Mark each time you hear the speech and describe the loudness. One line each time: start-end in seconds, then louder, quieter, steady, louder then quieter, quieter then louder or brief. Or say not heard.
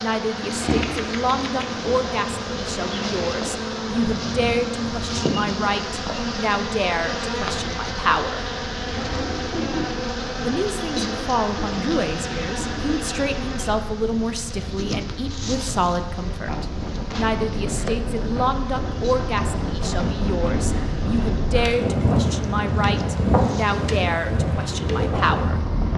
0.0-8.4 steady
10.4-25.6 steady.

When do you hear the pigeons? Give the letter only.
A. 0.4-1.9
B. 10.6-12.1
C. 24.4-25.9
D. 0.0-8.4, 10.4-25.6
A.